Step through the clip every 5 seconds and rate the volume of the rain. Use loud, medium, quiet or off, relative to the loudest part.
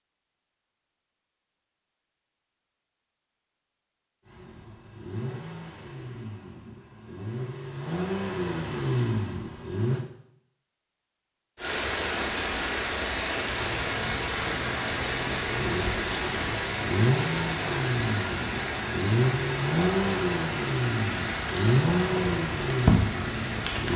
off, off, loud, loud, loud.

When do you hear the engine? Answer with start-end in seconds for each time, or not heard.
4.2-10.1, 13.4-23.9.